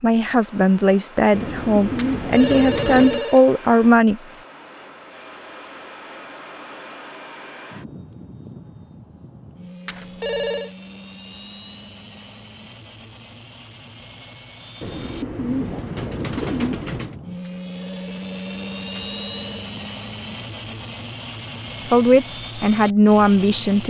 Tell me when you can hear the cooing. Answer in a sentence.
You can hear the cooing from 1.3 to 3.2 s and from 14.8 to 17.1 s.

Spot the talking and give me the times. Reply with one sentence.
The talking can be heard from 0.0 to 4.2 s and from 21.9 to 23.8 s.